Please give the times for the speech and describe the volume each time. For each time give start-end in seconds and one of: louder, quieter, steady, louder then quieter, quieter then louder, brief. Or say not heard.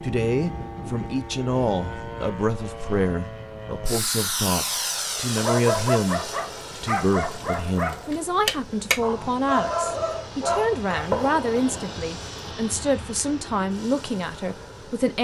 0.0-15.1 steady.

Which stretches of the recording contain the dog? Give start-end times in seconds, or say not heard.
5.3-11.1.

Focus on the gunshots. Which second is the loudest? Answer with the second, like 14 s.
11 s.